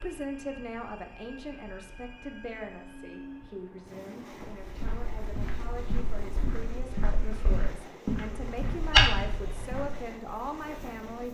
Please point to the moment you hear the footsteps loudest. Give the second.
9 s.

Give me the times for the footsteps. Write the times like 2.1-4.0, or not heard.
4.5-11.2.